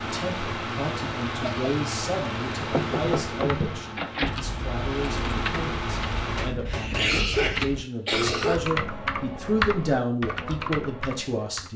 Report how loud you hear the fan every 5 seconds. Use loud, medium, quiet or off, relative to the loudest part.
loud, loud, off.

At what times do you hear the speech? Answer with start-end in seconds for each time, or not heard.
0.0-11.7.